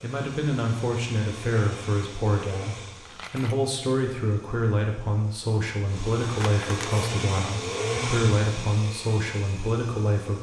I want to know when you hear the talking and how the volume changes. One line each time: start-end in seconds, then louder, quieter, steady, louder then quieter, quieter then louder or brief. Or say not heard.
0.0-10.3 steady.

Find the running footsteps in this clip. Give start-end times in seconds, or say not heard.
not heard.